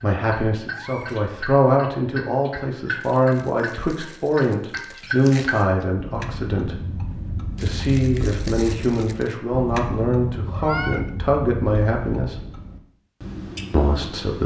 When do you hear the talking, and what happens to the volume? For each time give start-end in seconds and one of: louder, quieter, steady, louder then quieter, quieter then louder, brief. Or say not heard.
0.0-12.4 steady
13.7-14.4 brief.